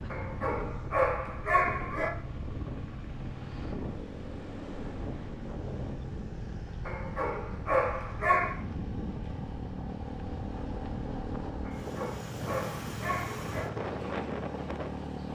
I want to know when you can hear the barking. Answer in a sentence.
You can hear the barking from 0.1 to 2.1 s, from 6.8 to 8.6 s and from 11.7 to 13.7 s.